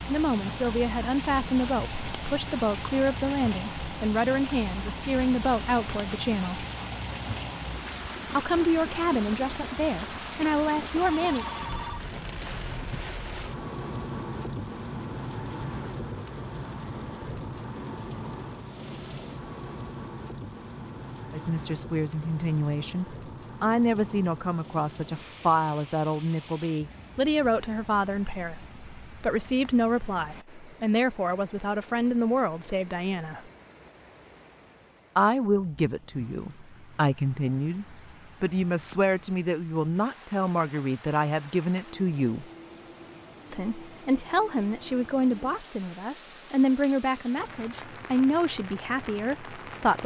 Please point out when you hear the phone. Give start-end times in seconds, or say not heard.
11.0-12.6.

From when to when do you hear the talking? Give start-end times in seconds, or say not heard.
0.1-6.7, 8.3-11.4, 21.3-33.4, 35.1-42.5, 43.5-50.0.